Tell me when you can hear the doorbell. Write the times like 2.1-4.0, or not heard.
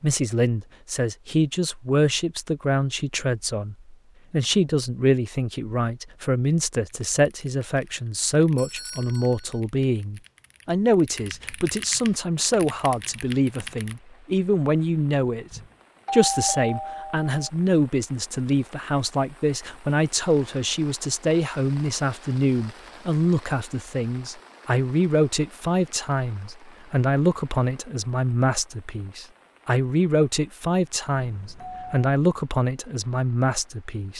8.6-9.6, 15.5-17.3, 31.1-32.1.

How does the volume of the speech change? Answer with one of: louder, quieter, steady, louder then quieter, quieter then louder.
steady.